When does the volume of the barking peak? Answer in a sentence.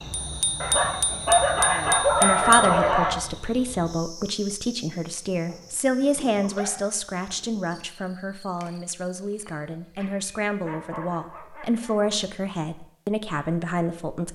The volume of the barking peaks at 2 seconds.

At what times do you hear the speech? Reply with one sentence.
You can hear the speech from 1.7 to 14.2 s.